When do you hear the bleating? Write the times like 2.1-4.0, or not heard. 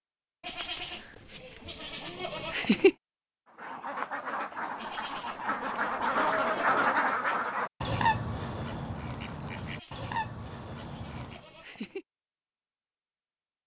0.5-3.0, 4.8-6.7, 9.6-12.1.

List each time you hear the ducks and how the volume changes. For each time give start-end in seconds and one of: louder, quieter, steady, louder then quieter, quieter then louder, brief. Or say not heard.
3.5-11.4 louder then quieter.